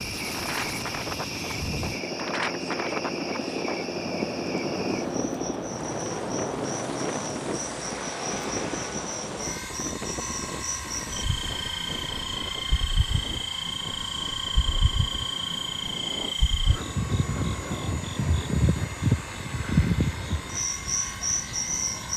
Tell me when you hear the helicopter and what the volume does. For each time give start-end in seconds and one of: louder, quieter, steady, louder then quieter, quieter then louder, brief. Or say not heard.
0.0-22.1 quieter.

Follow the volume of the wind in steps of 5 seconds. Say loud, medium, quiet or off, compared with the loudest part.
loud, loud, medium, medium, medium.